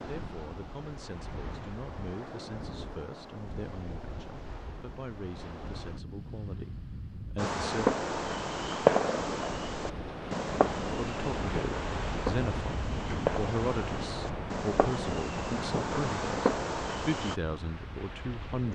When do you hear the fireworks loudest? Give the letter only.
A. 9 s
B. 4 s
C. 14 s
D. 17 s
A.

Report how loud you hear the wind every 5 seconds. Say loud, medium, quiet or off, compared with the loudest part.
medium, medium, loud, medium.